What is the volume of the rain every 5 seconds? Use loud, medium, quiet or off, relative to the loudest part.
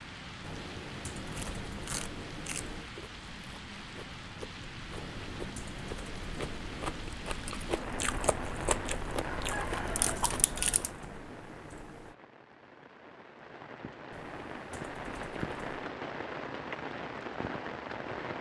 medium, loud, medium, loud.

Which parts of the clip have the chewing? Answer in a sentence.
You can hear the chewing from 1.3 to 10.9 s.